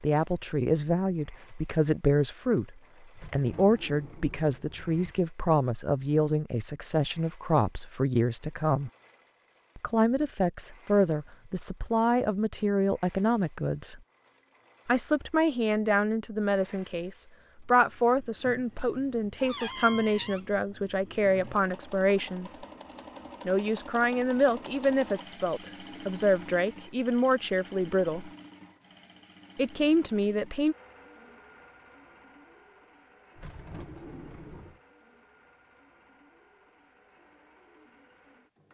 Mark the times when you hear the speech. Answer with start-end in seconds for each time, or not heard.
0.0-8.9, 9.8-14.0, 14.8-22.6, 23.4-28.3, 29.6-30.8.